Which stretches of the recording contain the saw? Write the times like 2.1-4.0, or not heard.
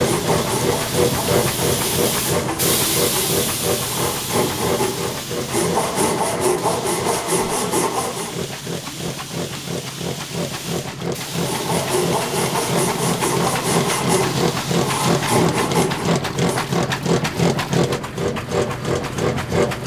0.0-8.4, 11.2-16.8.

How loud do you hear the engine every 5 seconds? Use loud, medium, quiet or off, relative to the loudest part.
loud, medium, loud, loud.